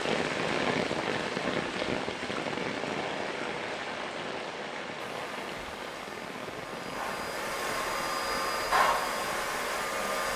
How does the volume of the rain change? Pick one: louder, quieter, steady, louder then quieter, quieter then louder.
quieter.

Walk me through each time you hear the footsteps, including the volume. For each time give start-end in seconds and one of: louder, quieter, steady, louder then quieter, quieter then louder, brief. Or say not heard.
not heard.